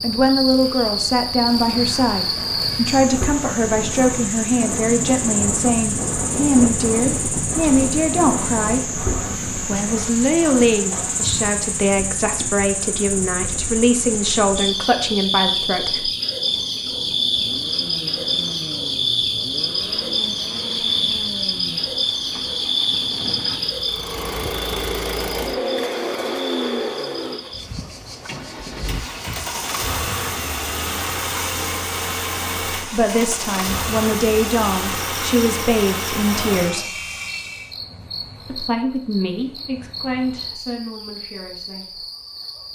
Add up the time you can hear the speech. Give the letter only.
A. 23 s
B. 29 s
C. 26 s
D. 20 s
A.